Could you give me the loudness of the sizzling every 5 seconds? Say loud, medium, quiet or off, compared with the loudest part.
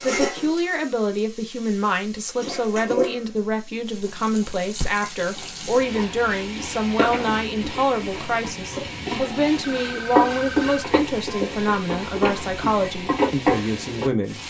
medium, medium, loud.